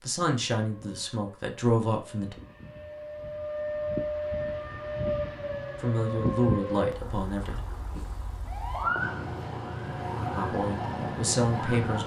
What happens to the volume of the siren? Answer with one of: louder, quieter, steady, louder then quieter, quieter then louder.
louder.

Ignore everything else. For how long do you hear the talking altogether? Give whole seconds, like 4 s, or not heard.
6 s.